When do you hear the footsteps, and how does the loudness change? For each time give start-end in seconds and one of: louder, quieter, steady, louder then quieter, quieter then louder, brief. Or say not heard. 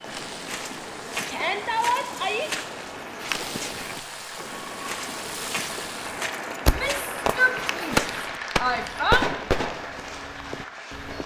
0.0-11.2 quieter.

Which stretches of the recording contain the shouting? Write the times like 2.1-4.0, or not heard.
1.2-2.5, 6.7-9.3.